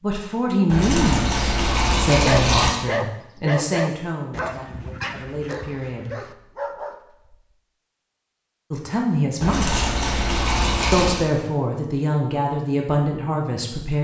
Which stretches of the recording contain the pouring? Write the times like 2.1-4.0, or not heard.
0.7-2.7, 9.4-11.2.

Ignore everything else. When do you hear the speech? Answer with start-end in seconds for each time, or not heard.
0.0-6.1, 8.7-9.8, 10.9-13.9.